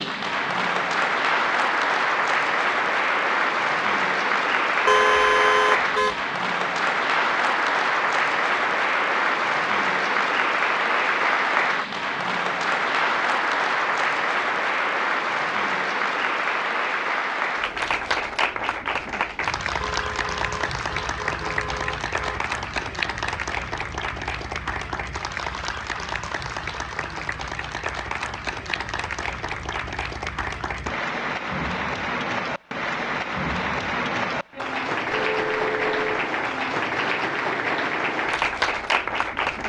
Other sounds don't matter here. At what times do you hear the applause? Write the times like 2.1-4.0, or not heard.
0.0-39.6.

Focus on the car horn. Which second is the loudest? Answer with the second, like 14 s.
5 s.